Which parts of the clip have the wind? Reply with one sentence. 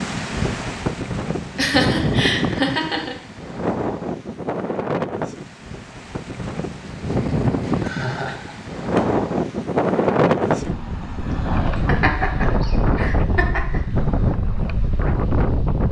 You can hear the wind from 0.0 to 15.8 s.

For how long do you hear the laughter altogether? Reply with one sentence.
You can hear the laughter for 5 seconds altogether.